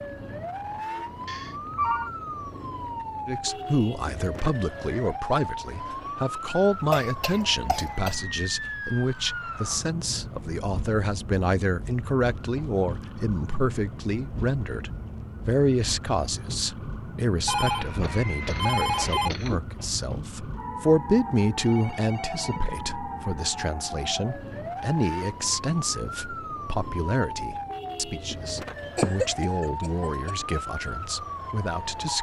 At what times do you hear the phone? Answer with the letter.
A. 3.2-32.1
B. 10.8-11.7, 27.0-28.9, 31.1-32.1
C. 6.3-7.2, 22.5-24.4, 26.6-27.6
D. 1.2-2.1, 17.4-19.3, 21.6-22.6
D.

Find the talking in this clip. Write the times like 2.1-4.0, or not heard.
3.2-32.1.